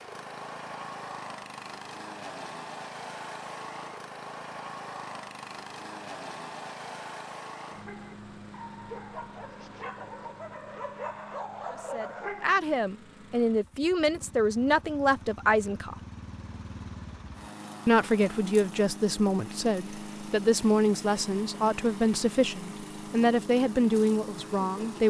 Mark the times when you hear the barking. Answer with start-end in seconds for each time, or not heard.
7.8-12.5.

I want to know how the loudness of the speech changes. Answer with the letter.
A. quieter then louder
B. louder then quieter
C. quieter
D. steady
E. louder
D.